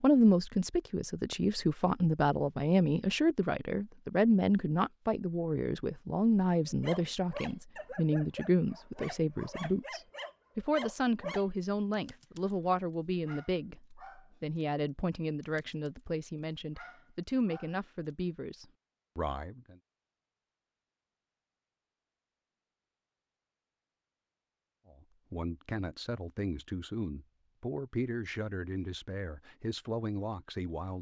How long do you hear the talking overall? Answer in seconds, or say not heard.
26 s.